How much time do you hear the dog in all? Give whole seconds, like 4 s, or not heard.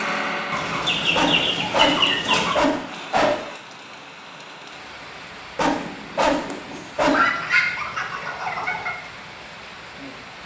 4 s.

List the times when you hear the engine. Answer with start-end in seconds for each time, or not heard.
0.0-1.6.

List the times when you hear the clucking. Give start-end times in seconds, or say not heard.
0.5-2.6, 7.0-8.9.